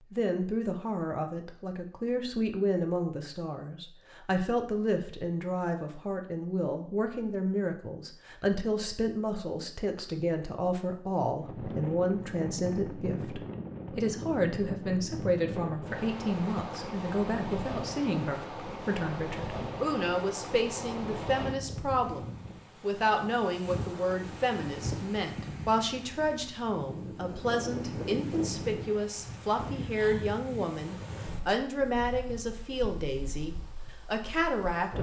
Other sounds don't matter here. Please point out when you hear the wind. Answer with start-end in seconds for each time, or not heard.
11.4-34.9.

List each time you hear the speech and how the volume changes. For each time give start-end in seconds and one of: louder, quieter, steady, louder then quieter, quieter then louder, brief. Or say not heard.
0.1-34.9 steady.